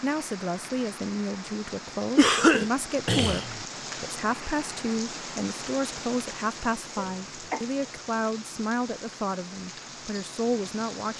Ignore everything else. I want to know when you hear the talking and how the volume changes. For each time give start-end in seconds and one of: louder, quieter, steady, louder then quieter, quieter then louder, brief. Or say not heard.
0.0-11.1 steady.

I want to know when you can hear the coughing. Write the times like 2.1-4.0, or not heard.
2.1-3.6, 7.0-7.7.